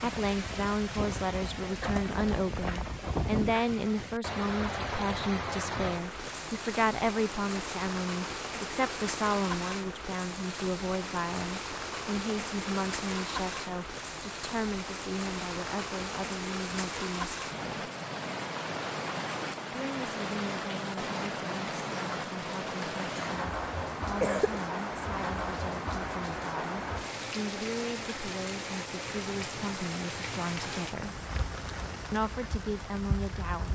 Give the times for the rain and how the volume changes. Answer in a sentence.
The rain can be heard from 0.0 to 33.7 s, at a steady volume.